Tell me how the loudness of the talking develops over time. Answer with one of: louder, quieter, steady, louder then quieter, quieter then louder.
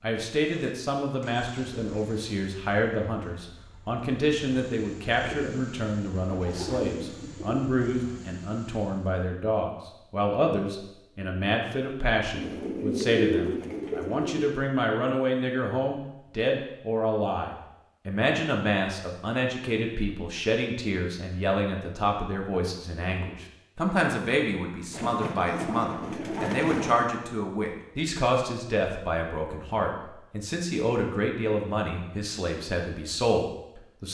steady.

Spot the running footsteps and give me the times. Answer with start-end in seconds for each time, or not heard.
not heard.